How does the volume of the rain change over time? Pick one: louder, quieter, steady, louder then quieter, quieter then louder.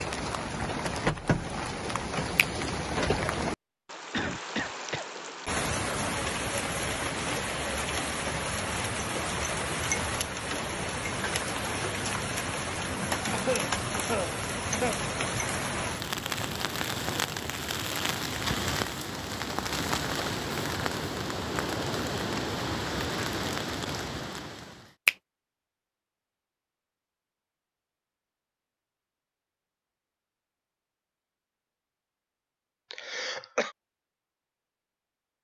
steady.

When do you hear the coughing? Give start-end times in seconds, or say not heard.
4.1-5.0, 13.3-14.9, 32.9-33.7.